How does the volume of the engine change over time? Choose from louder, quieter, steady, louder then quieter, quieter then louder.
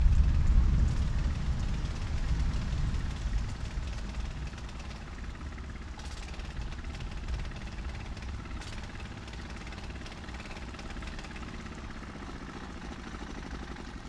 louder.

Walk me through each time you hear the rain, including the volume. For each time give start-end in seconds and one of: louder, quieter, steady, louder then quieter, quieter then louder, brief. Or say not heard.
0.0-14.0 quieter.